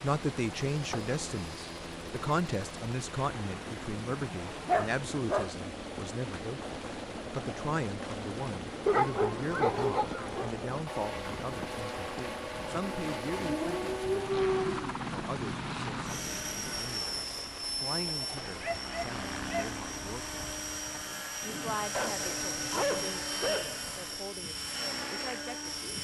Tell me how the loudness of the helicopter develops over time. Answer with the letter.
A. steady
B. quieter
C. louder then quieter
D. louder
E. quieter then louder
D.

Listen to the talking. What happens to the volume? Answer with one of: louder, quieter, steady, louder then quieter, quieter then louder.
quieter.